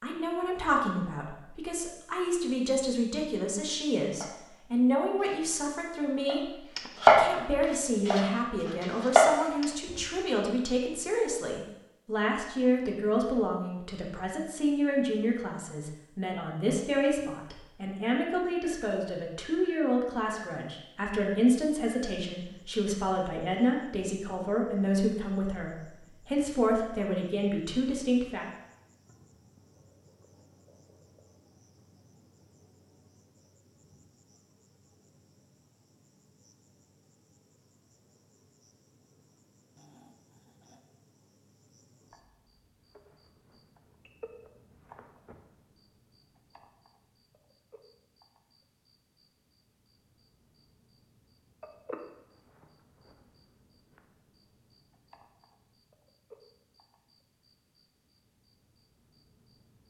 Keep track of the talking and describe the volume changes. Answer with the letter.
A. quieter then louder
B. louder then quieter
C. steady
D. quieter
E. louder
C.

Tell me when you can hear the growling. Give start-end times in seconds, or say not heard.
39.8-40.9.